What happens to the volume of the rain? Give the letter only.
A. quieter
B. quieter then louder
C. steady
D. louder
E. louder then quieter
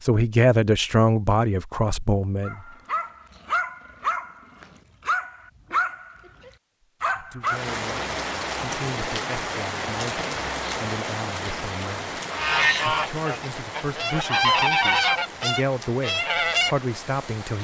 A.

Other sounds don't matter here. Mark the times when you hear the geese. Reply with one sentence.
You can hear the geese from 12.3 to 17.4 s.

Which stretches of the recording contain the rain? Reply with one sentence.
The rain can be heard from 7.4 to 17.6 s.